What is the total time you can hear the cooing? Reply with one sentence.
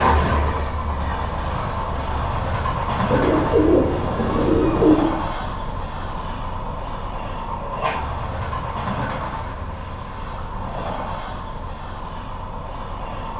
You can hear the cooing for 2 seconds altogether.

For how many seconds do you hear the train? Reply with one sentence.
You can hear the train for 13 seconds altogether.